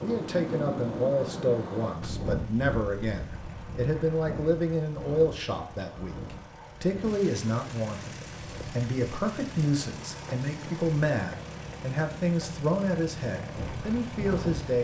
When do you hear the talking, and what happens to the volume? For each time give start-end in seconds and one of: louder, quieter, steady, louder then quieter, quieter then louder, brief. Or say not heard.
0.0-14.7 steady.